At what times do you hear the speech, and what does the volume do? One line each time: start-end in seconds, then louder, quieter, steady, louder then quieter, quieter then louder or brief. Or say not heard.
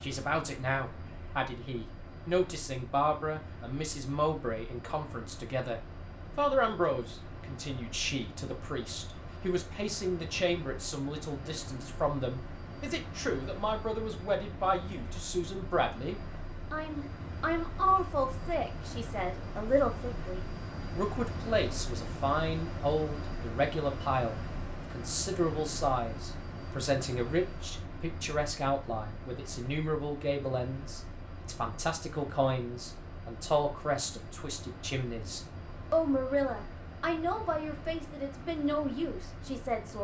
0.0-39.9 steady.